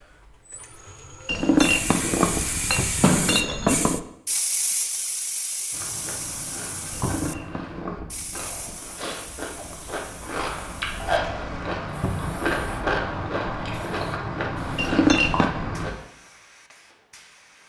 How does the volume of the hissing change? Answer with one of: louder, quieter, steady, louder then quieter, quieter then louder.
quieter.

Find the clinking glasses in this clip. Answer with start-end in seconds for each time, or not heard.
1.2-4.0, 6.9-8.7, 14.8-15.5.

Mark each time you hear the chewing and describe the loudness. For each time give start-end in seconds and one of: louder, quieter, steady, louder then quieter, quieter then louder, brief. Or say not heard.
5.7-15.9 louder.